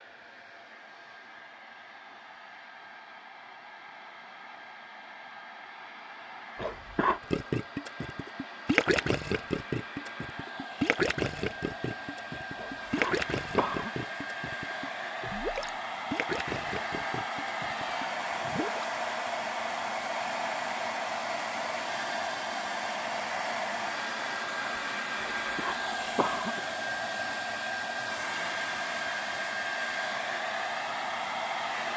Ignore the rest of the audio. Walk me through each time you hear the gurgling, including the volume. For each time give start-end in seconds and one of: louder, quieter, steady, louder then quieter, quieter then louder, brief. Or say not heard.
7.3-18.9 quieter.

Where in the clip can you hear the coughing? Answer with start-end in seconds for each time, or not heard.
6.5-7.2, 12.6-13.9, 25.2-26.6.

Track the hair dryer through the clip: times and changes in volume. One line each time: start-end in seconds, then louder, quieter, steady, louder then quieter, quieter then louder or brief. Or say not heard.
0.0-31.9 louder.